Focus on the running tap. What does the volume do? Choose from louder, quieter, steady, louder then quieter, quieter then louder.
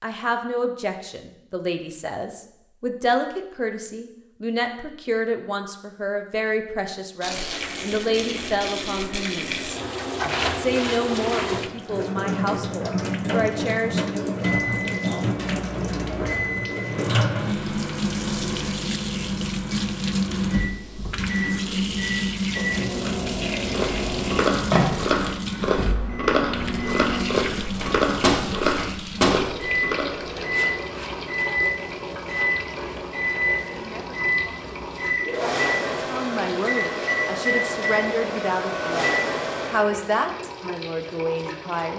quieter.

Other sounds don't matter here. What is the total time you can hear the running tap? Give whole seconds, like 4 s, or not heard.
35 s.